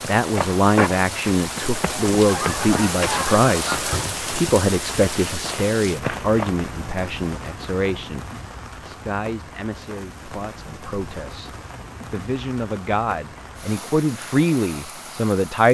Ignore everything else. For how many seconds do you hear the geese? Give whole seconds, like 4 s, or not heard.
2 s.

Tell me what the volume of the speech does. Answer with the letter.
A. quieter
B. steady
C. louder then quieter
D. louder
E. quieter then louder
E.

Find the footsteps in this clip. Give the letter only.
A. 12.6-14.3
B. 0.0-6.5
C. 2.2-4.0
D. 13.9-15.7
B.